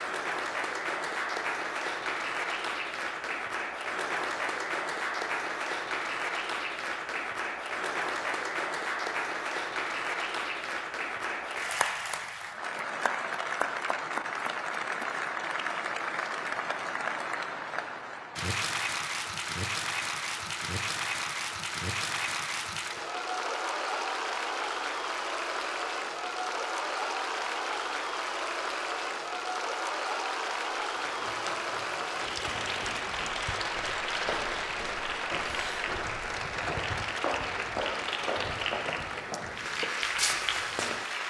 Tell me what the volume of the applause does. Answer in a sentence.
The loudness of the applause stays about the same.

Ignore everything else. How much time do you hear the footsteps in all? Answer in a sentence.
The footsteps can be heard for 10 seconds in total.